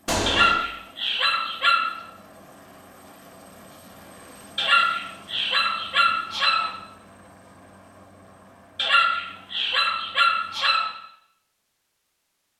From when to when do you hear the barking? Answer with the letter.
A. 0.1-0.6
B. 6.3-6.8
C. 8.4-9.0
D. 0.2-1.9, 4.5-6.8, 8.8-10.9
D.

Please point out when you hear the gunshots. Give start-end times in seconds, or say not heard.
0.1-0.6.